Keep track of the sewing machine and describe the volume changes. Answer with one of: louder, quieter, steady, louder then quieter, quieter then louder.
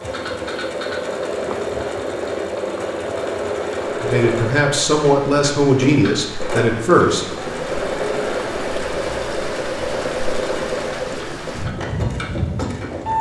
steady.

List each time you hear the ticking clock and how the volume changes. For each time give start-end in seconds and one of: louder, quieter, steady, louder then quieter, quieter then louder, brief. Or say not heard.
not heard.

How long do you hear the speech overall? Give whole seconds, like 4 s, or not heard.
3 s.